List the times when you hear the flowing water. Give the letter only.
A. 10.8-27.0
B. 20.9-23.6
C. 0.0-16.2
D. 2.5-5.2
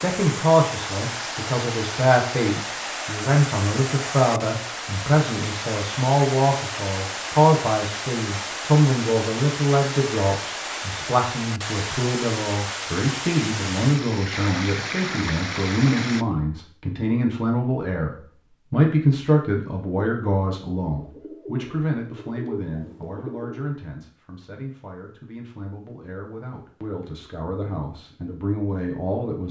C.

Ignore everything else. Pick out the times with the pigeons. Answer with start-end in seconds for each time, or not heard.
20.9-23.6.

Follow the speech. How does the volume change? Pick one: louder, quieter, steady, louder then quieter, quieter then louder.
quieter.